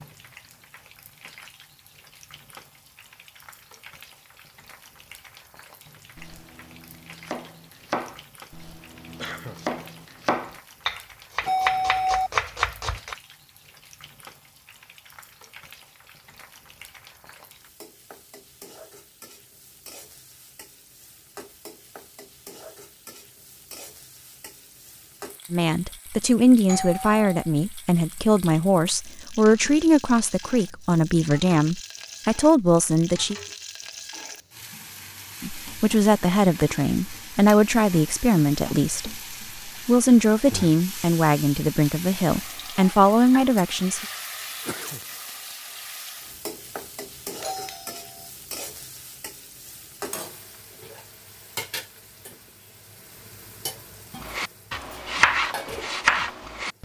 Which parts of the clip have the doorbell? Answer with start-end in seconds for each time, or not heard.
11.4-12.3, 26.6-27.4, 47.4-48.2.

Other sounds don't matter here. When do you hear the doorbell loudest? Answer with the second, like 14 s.
12 s.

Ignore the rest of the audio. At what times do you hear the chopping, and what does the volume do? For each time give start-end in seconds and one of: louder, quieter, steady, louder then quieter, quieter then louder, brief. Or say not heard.
6.2-13.2 louder
54.2-56.7 brief.